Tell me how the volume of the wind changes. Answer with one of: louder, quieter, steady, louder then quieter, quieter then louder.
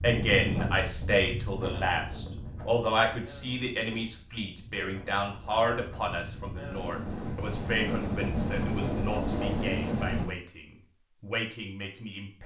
quieter then louder.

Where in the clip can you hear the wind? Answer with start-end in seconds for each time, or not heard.
0.0-10.3.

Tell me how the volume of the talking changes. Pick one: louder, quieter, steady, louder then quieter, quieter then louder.
quieter.